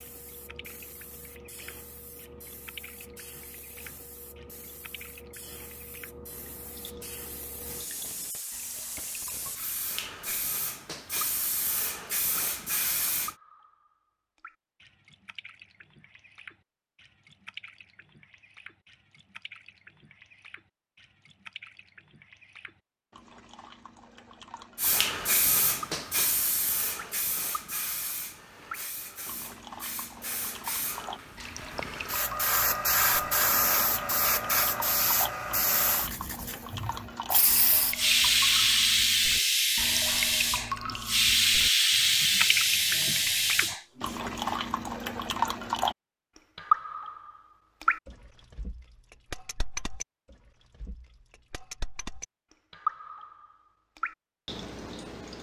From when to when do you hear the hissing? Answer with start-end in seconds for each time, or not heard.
0.0-13.3, 24.8-44.1.